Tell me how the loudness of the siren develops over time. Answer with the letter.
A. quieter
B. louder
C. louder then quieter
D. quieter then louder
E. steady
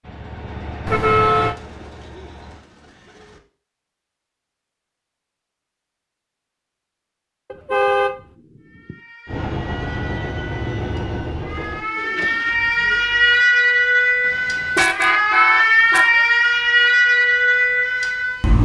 B.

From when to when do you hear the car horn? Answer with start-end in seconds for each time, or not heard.
0.8-1.6, 7.5-8.2, 14.2-16.2.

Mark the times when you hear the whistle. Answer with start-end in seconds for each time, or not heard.
not heard.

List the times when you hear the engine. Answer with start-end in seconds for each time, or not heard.
0.0-2.6, 9.2-13.5.